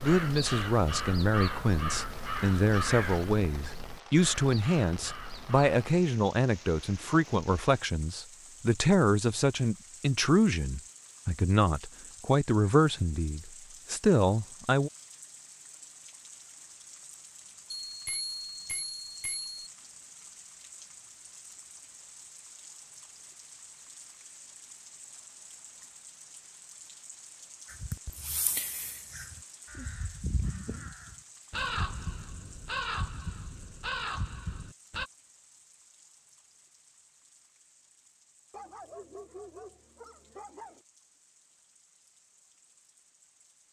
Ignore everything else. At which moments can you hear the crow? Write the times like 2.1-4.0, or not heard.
0.0-5.8, 27.6-35.1.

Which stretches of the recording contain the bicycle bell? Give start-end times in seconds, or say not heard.
17.7-19.7.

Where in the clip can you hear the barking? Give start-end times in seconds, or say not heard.
38.5-40.9.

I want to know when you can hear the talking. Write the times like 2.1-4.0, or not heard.
0.0-14.9.